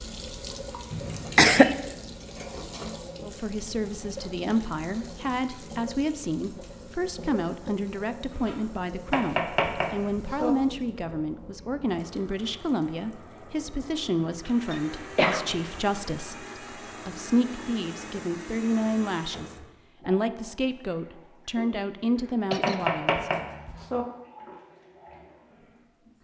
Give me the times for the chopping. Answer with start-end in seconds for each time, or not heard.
9.1-10.5, 22.6-24.1.